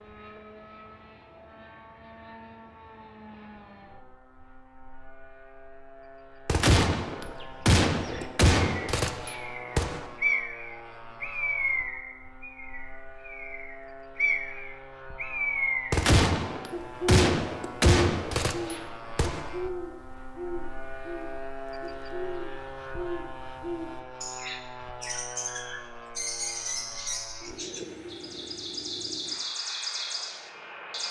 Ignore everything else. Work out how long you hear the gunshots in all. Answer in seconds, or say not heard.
7 s.